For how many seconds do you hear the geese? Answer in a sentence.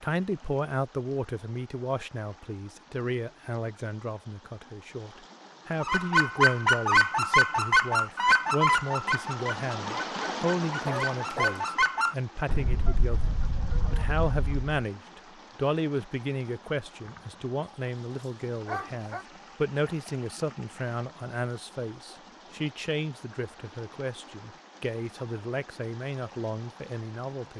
You can hear the geese for 9 seconds altogether.